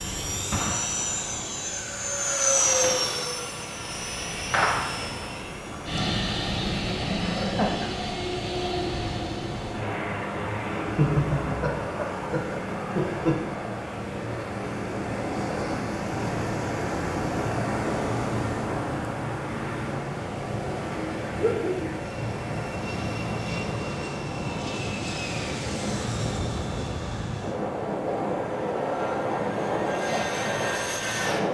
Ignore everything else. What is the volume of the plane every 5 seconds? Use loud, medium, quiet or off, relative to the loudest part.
loud, loud, medium, medium, medium, loud, loud.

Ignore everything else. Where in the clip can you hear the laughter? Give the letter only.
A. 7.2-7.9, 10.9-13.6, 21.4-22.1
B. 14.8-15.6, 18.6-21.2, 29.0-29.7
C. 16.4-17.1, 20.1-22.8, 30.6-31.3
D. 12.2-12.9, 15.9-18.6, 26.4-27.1
A.